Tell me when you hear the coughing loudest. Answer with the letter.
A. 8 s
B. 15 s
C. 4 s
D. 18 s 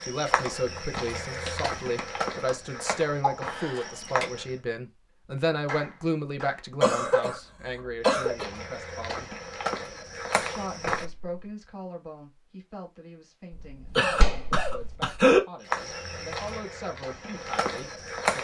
B.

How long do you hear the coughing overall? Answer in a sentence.
You can hear the coughing for 4 seconds altogether.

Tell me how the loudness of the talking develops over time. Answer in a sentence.
The volume of the talking goes down.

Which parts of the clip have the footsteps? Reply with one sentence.
The footsteps can be heard from 0.0 to 4.6 s, from 8.1 to 11.1 s and from 15.7 to 18.3 s.